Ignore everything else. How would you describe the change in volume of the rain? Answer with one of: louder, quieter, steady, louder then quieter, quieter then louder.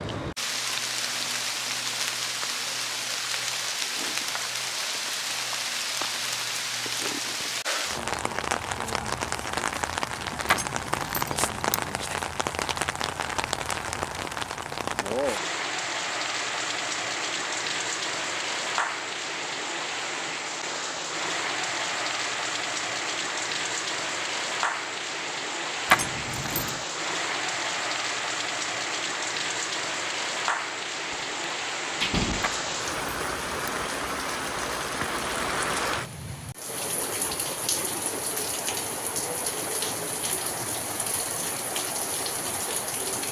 steady.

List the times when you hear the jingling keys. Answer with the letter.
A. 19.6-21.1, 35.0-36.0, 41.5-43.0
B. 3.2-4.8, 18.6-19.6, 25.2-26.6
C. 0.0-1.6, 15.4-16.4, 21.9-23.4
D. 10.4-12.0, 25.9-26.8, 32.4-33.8
D.